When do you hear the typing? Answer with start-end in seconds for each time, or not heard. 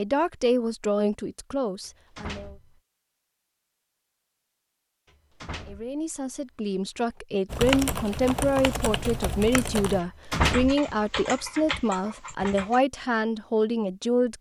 7.5-12.8.